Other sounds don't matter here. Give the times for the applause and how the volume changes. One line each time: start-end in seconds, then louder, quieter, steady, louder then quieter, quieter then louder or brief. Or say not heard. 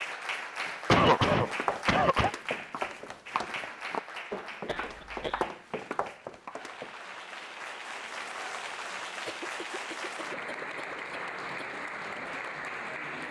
0.0-13.2 quieter then louder.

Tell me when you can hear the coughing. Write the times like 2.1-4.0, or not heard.
0.9-2.3, 4.7-5.5, 9.2-11.7.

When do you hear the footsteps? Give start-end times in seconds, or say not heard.
1.4-7.0.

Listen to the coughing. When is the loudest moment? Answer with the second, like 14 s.
1 s.